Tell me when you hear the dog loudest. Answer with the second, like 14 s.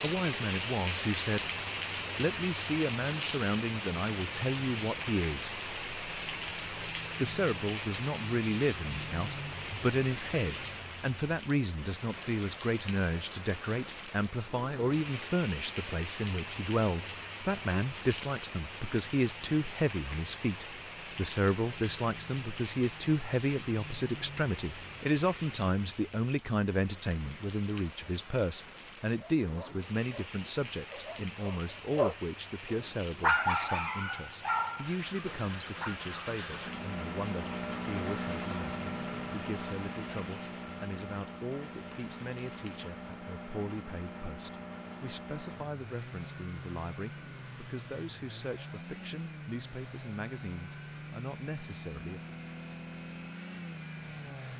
33 s.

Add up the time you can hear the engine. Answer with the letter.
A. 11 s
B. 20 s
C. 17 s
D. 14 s
B.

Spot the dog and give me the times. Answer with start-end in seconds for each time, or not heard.
29.1-36.0.